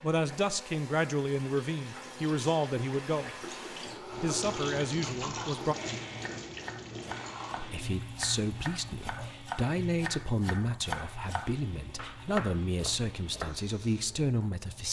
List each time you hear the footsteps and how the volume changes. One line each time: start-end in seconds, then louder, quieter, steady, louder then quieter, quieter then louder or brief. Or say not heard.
not heard.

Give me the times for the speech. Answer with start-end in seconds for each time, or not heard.
0.0-3.3, 4.0-5.8, 7.5-14.8.